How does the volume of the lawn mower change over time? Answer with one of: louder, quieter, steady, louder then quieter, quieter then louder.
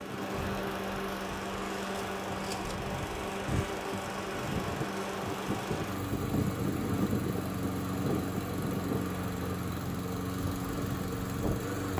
steady.